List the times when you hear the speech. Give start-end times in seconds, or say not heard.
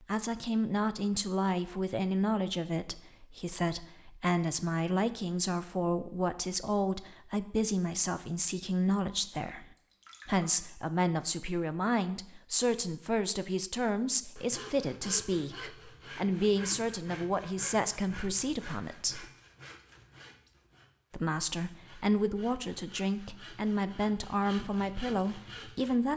0.1-9.7, 10.2-19.2, 21.1-26.1.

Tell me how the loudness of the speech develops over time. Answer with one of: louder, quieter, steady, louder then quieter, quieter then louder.
steady.